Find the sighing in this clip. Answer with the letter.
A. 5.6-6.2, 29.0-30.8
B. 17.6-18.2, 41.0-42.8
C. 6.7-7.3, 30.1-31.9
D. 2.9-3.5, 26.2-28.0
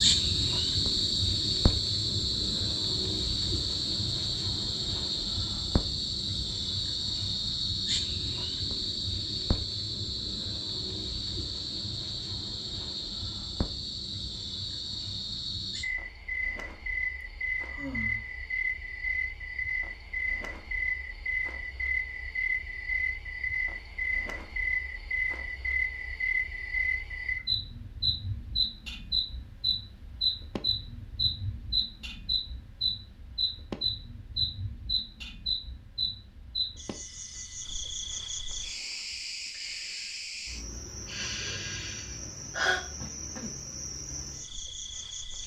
B.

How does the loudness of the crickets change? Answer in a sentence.
The loudness of the crickets goes down.